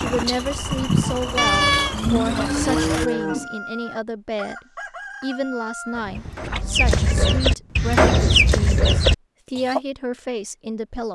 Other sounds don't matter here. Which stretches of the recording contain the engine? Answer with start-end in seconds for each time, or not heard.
0.0-3.1.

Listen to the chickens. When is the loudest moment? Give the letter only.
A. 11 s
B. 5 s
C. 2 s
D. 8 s
D.